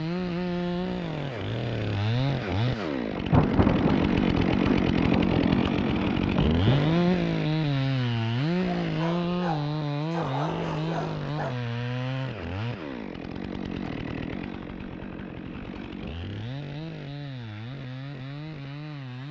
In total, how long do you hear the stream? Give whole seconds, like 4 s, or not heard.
not heard.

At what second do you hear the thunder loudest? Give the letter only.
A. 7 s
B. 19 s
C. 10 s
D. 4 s
D.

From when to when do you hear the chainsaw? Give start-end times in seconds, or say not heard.
0.0-19.2.